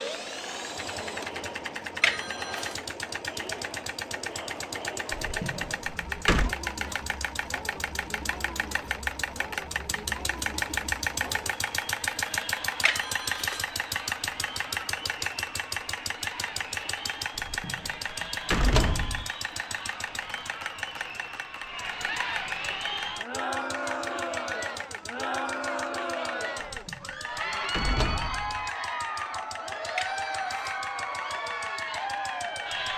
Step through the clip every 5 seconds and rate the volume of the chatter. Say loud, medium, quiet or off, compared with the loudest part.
medium, medium, medium, medium, loud, loud, loud.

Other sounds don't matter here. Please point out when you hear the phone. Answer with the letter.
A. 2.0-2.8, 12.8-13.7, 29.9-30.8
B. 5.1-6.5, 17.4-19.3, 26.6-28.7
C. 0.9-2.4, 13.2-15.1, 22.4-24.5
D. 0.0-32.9
A.